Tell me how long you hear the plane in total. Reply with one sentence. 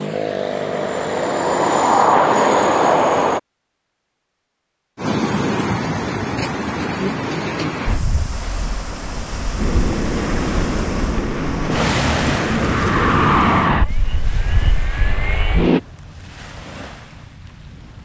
The plane can be heard for 10 seconds in total.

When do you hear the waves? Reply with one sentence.
The waves can be heard from 5.0 to 18.0 s.